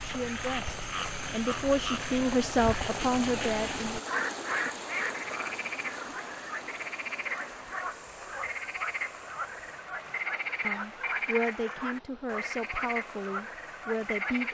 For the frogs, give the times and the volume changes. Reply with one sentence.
The frogs can be heard from 0.0 to 14.4 s, at a steady volume.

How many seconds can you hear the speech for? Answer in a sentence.
The speech can be heard for 8 seconds in total.